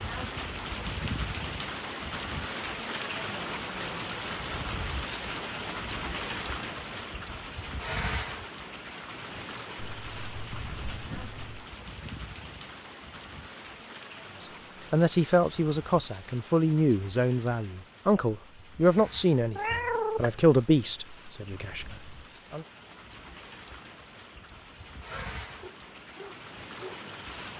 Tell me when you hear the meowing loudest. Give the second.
20 s.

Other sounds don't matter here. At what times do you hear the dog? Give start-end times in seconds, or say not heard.
25.1-27.1.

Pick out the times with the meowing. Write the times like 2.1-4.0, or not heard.
9.9-11.7, 19.6-20.4.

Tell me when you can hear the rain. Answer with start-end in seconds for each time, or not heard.
0.0-27.5.